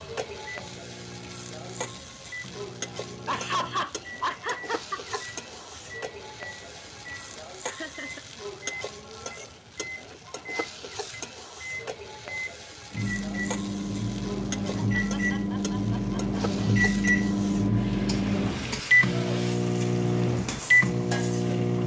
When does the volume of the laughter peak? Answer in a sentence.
The loudest moment of the laughter is at 4 seconds.